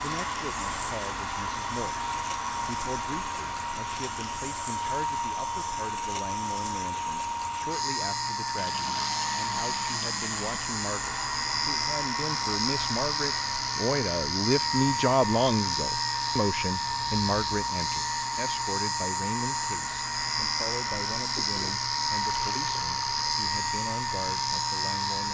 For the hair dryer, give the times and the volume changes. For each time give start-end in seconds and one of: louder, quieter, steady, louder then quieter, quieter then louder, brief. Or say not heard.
0.0-25.3 steady.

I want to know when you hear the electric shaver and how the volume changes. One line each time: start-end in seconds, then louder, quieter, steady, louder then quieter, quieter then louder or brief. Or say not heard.
0.0-25.3 louder.